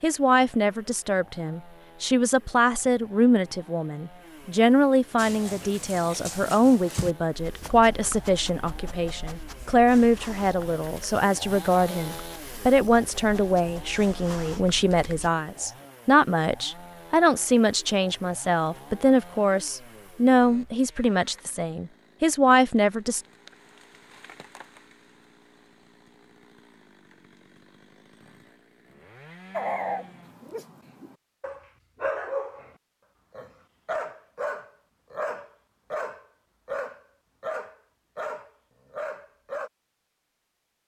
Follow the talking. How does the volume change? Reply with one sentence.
The volume of the talking stays about the same.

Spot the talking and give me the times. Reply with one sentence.
The talking can be heard from 0.0 to 23.2 s.